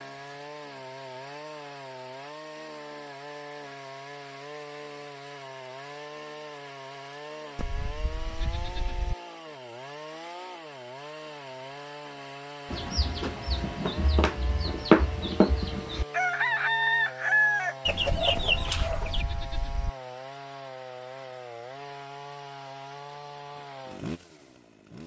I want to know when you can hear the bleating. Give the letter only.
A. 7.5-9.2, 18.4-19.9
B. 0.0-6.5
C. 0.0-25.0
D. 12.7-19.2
A.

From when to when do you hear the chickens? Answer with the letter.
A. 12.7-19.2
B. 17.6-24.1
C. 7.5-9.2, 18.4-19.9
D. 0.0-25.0
A.